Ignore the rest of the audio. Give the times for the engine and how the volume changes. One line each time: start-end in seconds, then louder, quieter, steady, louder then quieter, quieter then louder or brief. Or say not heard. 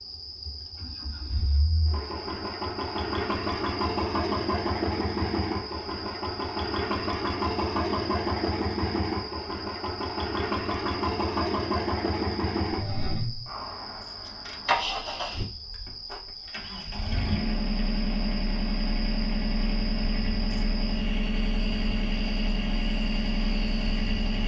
0.0-24.4 steady.